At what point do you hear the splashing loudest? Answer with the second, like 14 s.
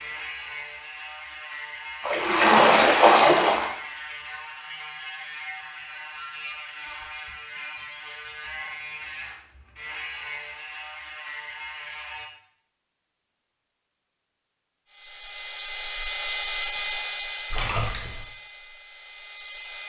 3 s.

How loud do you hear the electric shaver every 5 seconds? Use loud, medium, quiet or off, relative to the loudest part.
loud, loud, loud, off.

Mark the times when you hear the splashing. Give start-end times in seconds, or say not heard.
2.0-3.8, 17.5-18.2.